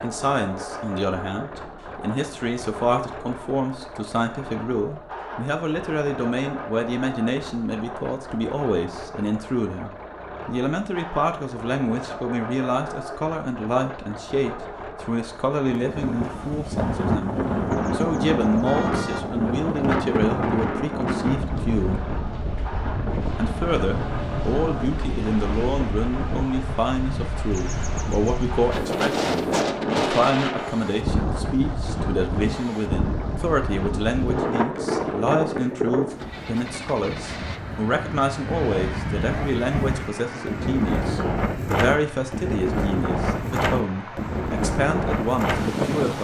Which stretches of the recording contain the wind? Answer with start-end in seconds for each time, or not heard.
15.7-46.1.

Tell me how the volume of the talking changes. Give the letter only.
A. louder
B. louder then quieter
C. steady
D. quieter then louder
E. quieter
C.